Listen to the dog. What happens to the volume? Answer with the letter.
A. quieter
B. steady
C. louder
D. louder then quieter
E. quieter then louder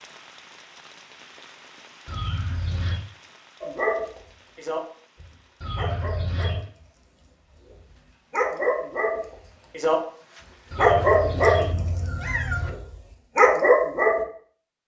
E.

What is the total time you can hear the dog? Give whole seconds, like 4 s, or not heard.
10 s.